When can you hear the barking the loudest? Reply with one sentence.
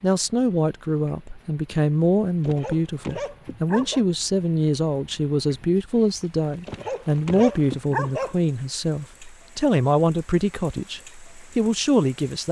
The loudest moment of the barking is at 8 seconds.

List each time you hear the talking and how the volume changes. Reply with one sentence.
The talking can be heard from 0.0 to 12.4 s, at a steady volume.